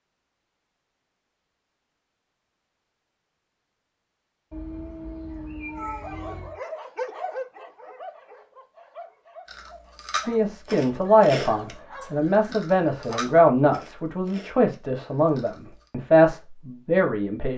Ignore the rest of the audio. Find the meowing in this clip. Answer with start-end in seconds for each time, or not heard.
4.5-6.5.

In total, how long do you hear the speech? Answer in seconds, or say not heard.
7 s.